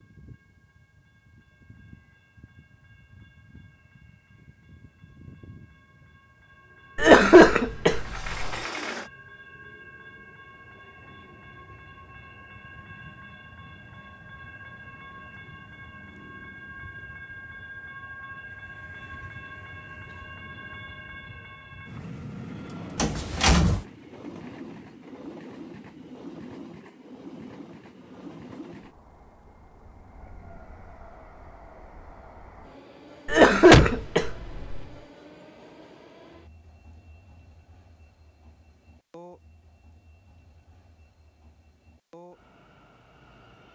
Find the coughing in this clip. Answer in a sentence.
You can hear the coughing from 7.0 to 8.6 s and from 33.2 to 34.9 s.